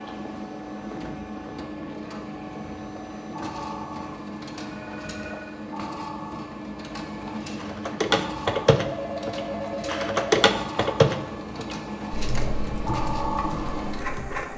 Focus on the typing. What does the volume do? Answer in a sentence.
The loudness of the typing goes down.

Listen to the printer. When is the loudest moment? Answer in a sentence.
The loudest moment of the printer is at 13 seconds.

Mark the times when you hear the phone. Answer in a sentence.
You can hear the phone from 4.5 to 5.6 s and from 8.8 to 10.3 s.